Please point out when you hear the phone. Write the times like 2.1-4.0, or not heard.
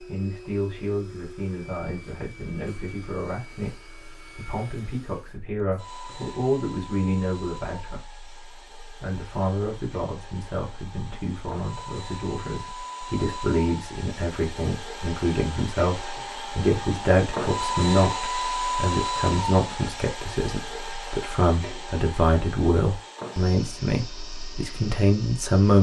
not heard.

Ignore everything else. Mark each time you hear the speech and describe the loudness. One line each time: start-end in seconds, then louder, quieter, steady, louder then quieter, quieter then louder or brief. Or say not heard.
0.0-25.7 louder.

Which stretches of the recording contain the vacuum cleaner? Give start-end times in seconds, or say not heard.
0.0-25.7.